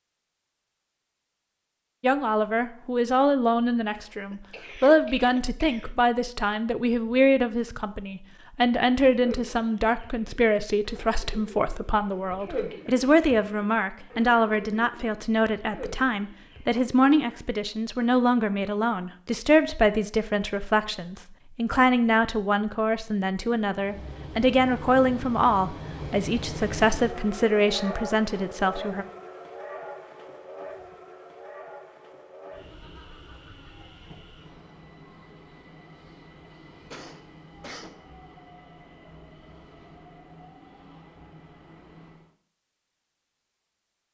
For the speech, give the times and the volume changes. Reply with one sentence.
The speech can be heard from 2.0 to 29.1 s, at a steady volume.